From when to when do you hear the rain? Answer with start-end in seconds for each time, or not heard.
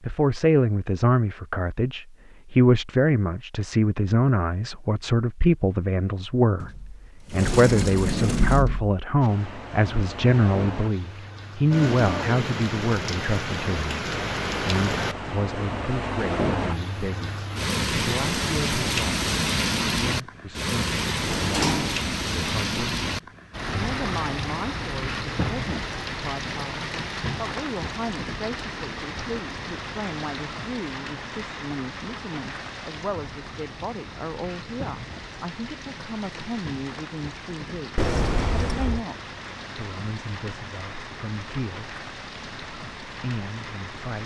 9.2-44.2.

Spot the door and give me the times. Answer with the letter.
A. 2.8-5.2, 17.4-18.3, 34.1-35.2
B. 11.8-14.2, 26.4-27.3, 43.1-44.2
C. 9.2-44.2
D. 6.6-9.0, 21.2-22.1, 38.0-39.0
D.